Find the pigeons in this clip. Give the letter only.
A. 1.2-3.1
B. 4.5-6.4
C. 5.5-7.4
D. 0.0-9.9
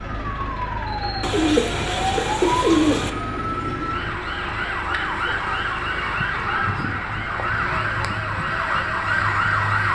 A.